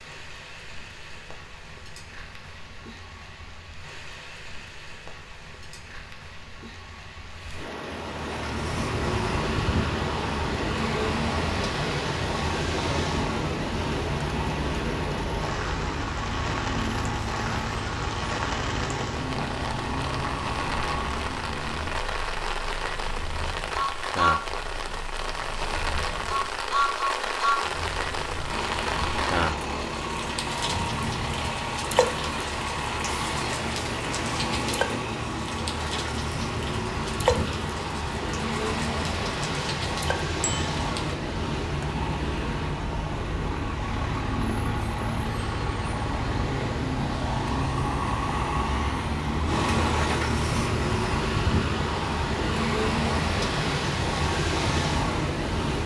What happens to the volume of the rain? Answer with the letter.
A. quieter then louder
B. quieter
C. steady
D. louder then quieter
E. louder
E.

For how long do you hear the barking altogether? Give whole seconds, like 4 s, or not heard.
not heard.